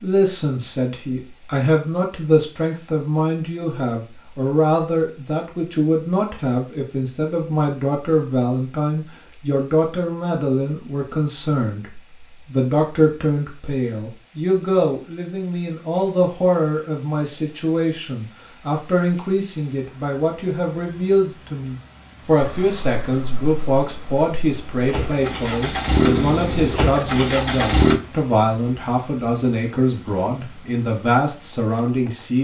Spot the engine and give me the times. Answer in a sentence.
You can hear the engine from 22.4 to 28.0 s.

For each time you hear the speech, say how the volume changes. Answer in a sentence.
You can hear the speech from 0.0 to 32.3 s, at a steady volume.